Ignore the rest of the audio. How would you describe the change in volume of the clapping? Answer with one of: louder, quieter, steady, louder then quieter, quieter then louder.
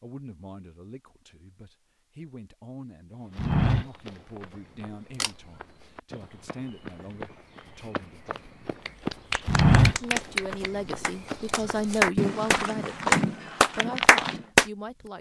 louder.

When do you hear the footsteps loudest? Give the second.
10 s.